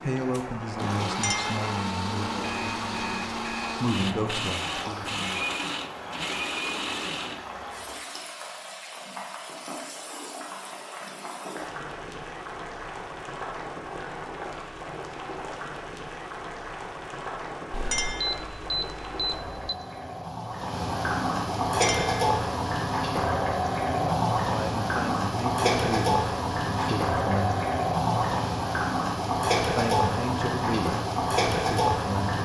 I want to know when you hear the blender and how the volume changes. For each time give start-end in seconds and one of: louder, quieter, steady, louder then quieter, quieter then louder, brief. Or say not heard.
0.0-7.4 steady.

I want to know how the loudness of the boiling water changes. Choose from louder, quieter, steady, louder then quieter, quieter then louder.
louder.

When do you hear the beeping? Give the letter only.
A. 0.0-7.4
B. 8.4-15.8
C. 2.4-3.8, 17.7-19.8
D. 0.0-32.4
C.